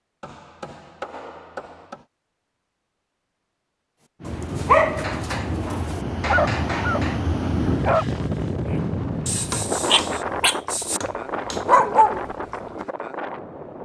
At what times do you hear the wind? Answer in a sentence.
The wind can be heard from 4.2 to 13.8 s.